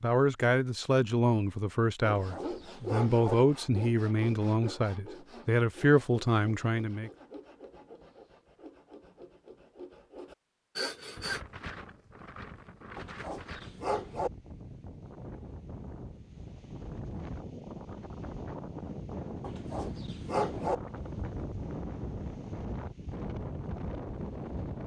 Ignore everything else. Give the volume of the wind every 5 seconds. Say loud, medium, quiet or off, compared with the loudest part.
off, off, medium, loud, loud.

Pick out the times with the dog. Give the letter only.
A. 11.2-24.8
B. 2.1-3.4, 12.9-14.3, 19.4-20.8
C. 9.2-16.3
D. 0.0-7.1
B.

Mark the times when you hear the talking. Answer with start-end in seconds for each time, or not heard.
0.0-7.1.